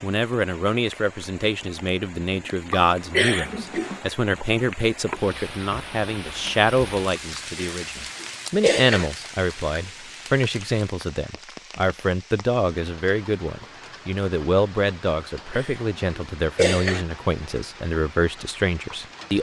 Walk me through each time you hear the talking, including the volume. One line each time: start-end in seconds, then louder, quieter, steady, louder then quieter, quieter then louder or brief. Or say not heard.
0.0-19.3 steady.